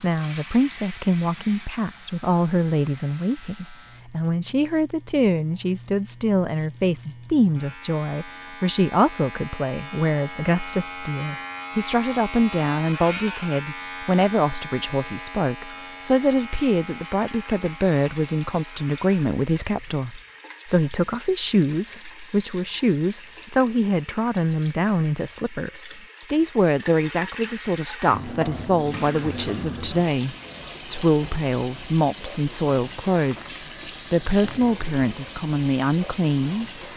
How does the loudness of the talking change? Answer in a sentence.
The loudness of the talking stays about the same.